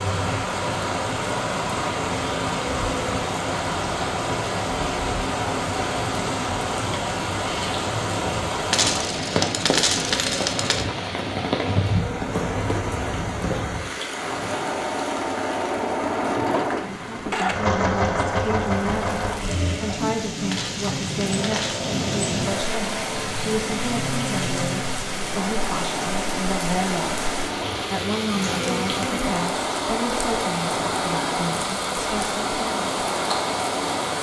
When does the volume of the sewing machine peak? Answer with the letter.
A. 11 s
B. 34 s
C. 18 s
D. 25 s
C.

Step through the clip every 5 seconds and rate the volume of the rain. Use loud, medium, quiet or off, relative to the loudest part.
loud, loud, loud, medium, loud, loud, loud.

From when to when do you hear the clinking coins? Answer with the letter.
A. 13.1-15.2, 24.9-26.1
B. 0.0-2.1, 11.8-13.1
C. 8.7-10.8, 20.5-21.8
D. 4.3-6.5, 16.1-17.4
C.